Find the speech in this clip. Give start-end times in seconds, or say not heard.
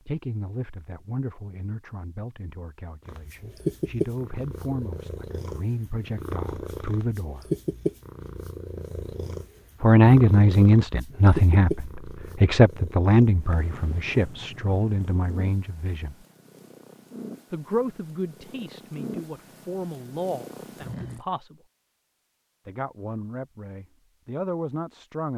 0.1-7.4, 9.8-16.1, 17.5-21.6, 22.6-25.3.